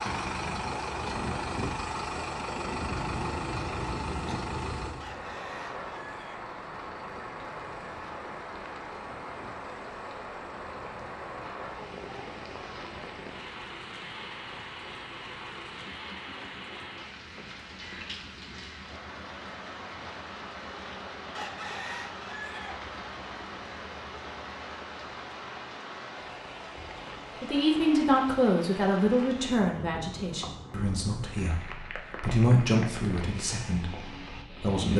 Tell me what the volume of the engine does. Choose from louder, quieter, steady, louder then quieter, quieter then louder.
quieter.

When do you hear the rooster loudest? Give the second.
22 s.